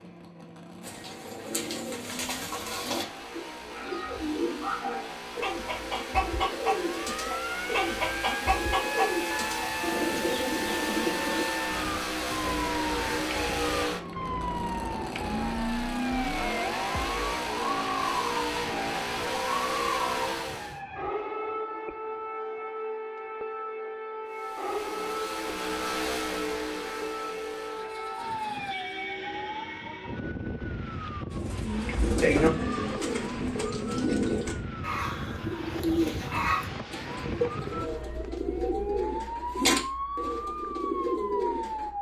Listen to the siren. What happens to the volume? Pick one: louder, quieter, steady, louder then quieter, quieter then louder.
steady.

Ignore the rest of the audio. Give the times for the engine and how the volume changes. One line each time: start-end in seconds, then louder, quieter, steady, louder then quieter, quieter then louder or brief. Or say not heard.
0.0-20.8 louder
24.2-29.1 louder then quieter.